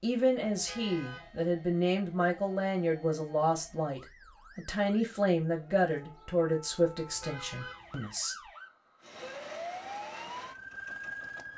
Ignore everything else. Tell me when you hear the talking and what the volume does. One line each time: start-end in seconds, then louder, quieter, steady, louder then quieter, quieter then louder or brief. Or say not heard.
0.0-8.3 steady.